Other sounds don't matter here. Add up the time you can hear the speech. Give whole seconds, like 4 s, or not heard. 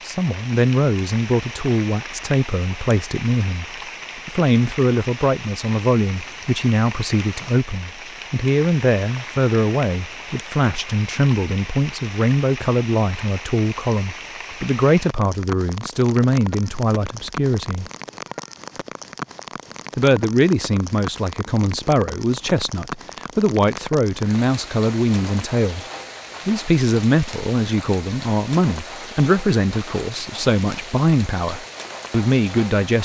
30 s.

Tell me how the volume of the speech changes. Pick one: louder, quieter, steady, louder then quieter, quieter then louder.
steady.